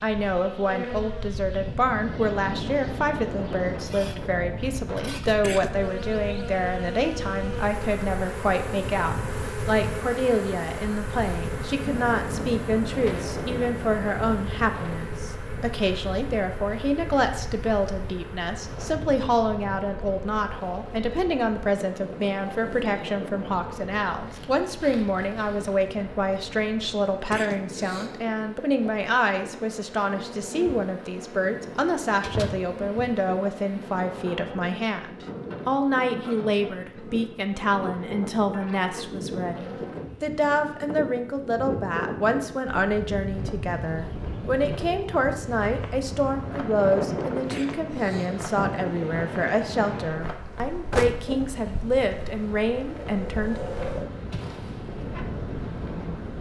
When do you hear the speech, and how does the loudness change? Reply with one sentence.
You can hear the speech from 0.0 to 53.6 s, at a steady volume.